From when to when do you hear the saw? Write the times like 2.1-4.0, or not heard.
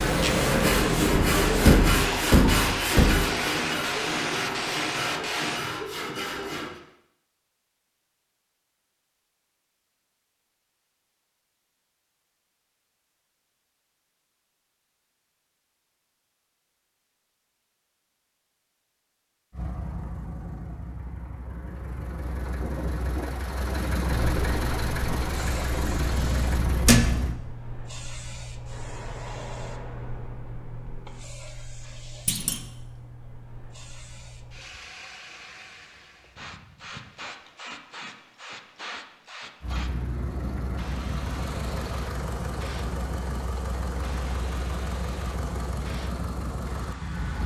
0.3-6.8.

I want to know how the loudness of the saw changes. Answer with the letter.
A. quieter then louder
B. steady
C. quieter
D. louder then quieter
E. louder
C.